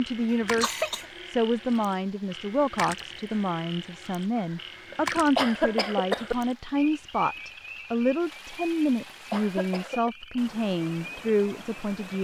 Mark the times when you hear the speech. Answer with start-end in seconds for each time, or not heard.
0.0-12.1.